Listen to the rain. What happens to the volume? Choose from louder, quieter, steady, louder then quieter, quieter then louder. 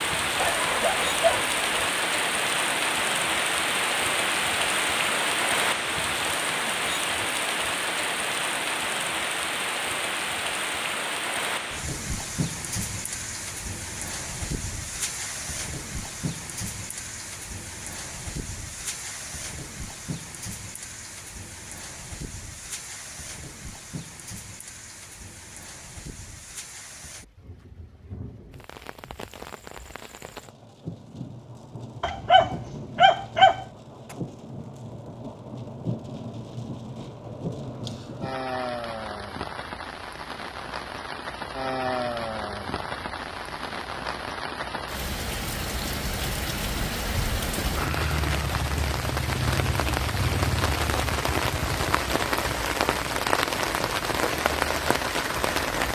quieter then louder.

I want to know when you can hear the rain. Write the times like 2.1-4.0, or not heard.
0.0-55.9.